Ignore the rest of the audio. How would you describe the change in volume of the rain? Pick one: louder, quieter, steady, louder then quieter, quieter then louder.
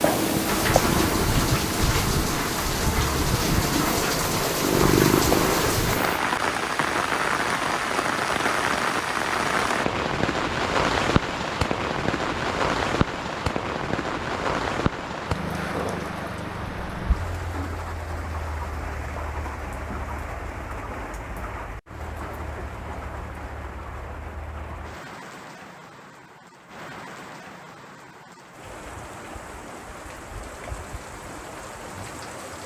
quieter.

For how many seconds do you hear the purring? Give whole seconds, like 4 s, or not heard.
6 s.